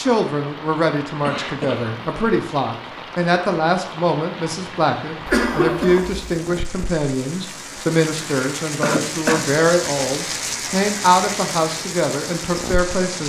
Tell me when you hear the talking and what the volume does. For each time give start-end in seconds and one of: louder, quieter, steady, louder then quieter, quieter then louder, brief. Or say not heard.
0.0-13.2 steady.